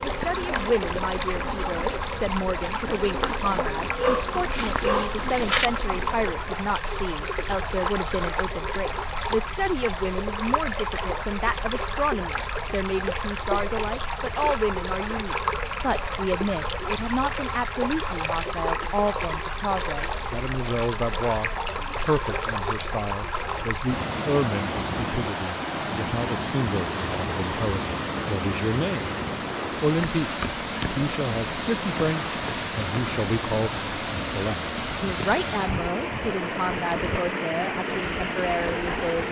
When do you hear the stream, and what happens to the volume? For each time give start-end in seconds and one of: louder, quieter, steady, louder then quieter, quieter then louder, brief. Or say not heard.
0.0-39.2 steady.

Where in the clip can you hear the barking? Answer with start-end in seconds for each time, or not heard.
4.0-5.7.